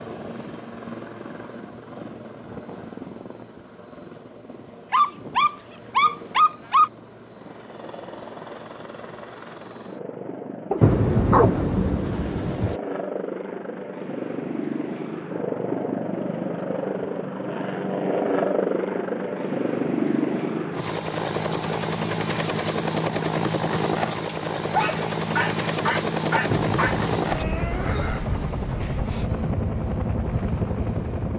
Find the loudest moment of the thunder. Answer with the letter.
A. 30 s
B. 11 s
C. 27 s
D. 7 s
B.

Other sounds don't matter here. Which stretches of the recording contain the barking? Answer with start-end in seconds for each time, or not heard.
4.9-6.9, 10.7-11.6, 24.2-27.0.